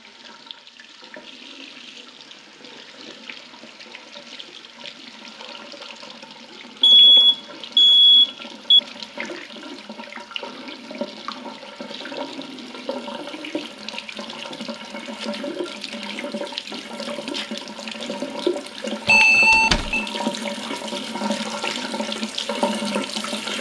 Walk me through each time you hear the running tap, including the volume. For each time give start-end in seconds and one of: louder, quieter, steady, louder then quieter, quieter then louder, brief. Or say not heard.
0.0-23.5 louder.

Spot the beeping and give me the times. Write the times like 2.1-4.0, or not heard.
6.8-8.8, 19.1-20.1.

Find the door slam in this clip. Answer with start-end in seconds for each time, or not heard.
19.5-20.0.